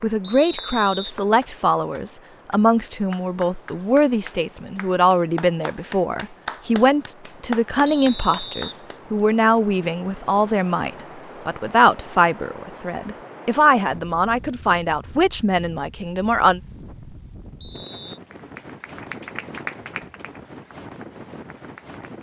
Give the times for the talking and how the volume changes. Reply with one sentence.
The talking can be heard from 0.0 to 16.6 s, at a steady volume.